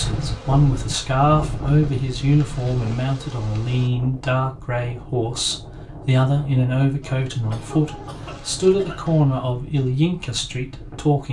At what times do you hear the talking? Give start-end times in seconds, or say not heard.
0.0-11.2.